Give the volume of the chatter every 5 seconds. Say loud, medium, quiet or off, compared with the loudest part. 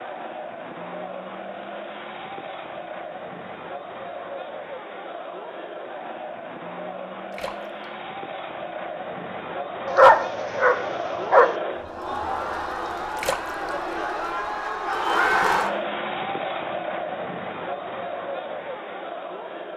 medium, medium, loud, loud.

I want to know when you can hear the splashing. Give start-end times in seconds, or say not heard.
7.3-7.8, 13.2-13.7.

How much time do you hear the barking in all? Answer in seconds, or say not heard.
2 s.